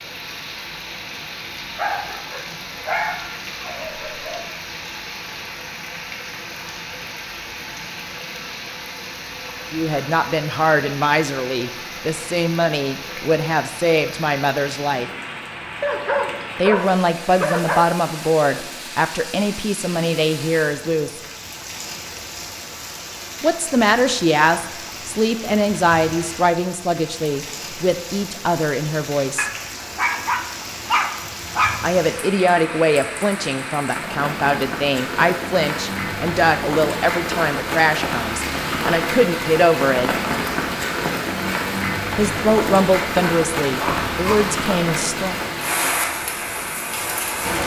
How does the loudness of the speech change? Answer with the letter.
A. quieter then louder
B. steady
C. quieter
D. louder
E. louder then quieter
B.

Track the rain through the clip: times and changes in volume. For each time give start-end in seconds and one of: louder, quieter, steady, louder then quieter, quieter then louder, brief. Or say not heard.
0.0-47.6 louder.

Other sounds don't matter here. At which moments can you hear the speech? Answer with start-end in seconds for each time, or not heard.
9.7-15.1, 16.6-21.2, 23.4-29.5, 31.8-40.1, 42.1-45.4.